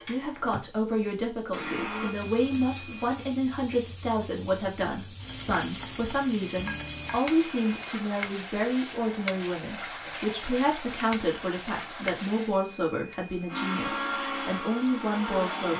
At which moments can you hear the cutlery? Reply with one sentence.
The cutlery can't be heard in this clip.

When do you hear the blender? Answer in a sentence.
The blender can be heard from 0.0 to 3.1 s and from 13.4 to 15.7 s.